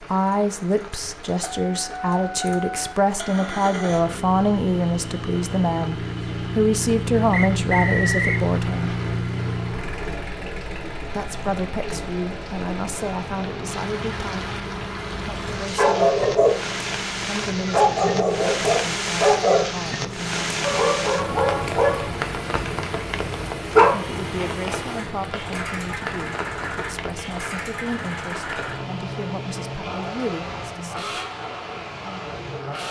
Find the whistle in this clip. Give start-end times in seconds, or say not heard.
7.3-8.4.